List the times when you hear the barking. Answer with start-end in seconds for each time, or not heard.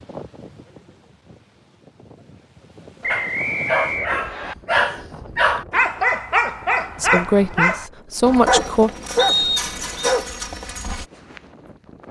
3.0-11.1.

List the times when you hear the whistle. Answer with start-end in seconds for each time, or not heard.
3.0-4.5, 9.2-10.2.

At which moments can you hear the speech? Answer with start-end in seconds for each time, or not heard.
7.0-8.9.